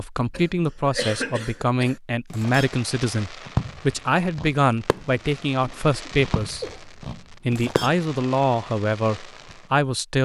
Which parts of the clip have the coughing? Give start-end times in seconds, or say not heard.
0.3-2.0, 5.6-6.8.